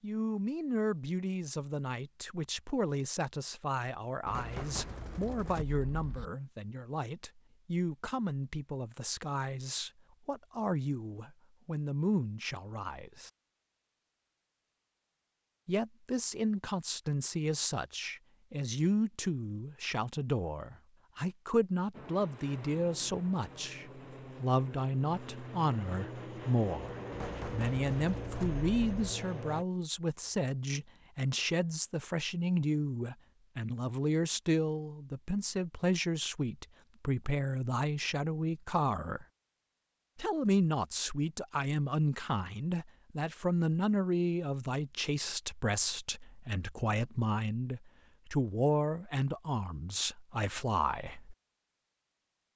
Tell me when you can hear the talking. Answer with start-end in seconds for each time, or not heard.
0.0-13.3, 15.7-39.2, 40.1-51.4.